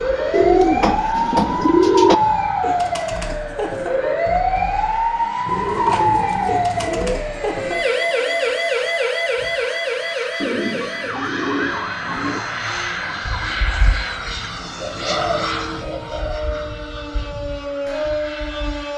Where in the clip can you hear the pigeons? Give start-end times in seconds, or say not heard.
0.3-2.1, 5.5-7.2, 10.4-12.4, 14.8-16.4.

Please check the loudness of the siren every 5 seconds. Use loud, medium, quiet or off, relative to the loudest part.
loud, loud, medium, medium.